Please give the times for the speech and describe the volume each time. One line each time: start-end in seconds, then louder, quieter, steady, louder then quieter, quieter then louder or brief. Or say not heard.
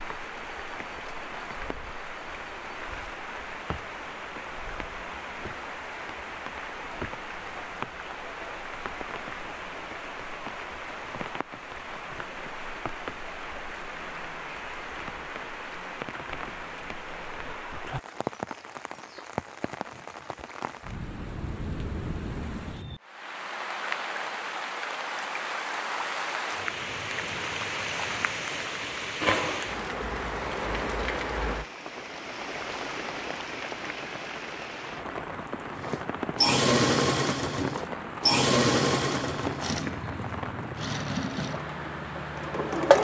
not heard.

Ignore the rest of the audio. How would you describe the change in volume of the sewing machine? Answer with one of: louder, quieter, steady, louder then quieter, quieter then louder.
quieter.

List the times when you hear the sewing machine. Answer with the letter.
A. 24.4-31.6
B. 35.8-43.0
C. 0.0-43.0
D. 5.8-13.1
B.